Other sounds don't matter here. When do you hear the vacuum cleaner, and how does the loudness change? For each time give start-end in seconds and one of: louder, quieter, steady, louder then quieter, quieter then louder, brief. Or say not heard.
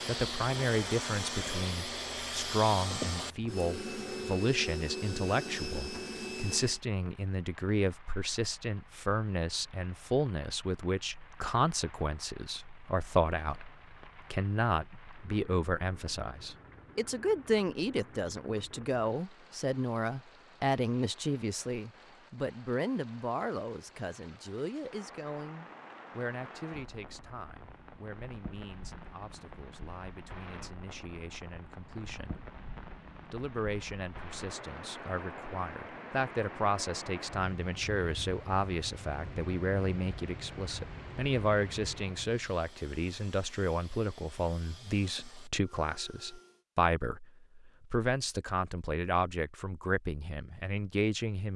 0.0-6.8 steady
42.2-46.6 steady.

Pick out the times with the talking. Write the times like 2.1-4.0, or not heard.
0.1-32.5, 33.2-51.5.